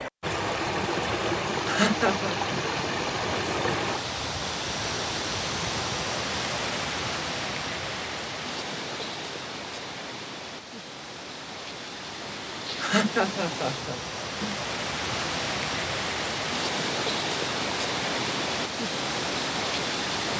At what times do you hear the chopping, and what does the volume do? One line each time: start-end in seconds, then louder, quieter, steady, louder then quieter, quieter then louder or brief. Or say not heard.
not heard.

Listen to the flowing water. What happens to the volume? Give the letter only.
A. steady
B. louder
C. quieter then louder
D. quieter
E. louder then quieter
C.